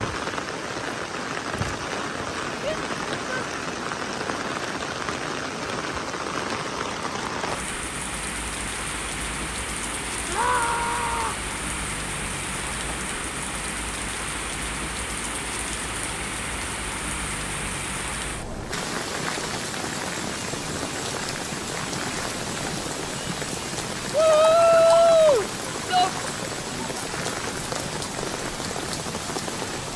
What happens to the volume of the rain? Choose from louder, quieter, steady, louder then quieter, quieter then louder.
steady.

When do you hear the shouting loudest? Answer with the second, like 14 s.
25 s.